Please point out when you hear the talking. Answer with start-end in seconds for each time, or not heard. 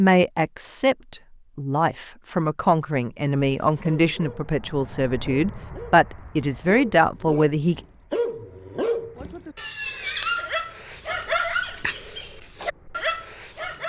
0.0-7.8.